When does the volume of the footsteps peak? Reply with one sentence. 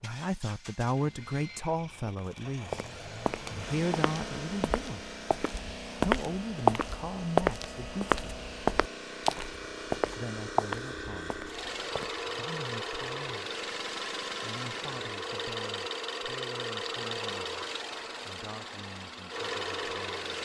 The loudest moment of the footsteps is at 7 seconds.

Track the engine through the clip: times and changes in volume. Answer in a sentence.
The engine can be heard from 0.0 to 20.4 s, getting louder.